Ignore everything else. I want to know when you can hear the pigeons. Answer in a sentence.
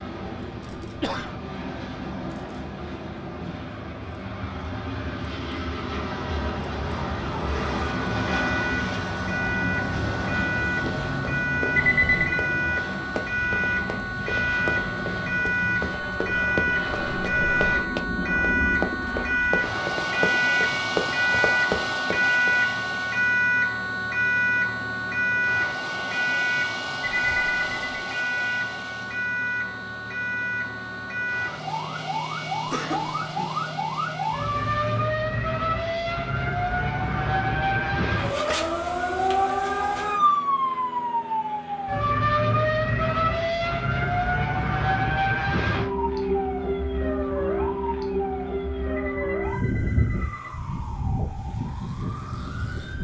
You can't hear the pigeons here.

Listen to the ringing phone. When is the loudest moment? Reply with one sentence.
The volume of the ringing phone peaks at 12 seconds.